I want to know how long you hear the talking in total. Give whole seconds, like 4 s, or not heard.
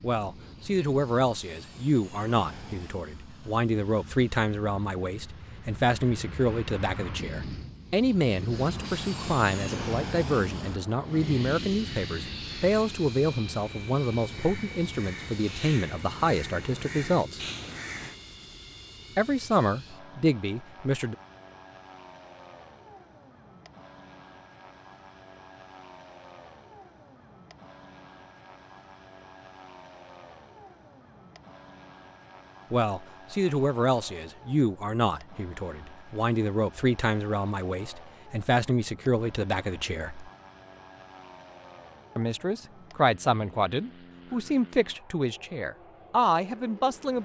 32 s.